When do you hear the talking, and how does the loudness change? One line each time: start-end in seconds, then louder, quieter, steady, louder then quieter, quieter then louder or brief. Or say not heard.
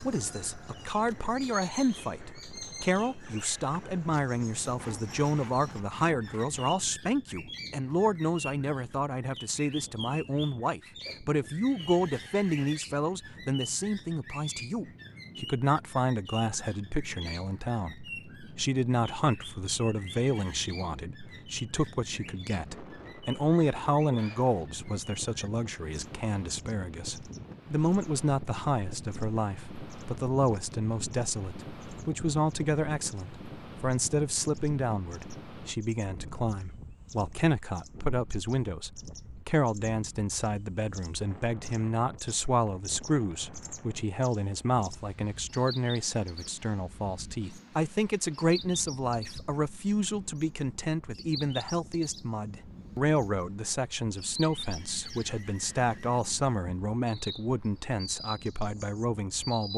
0.0-59.7 steady.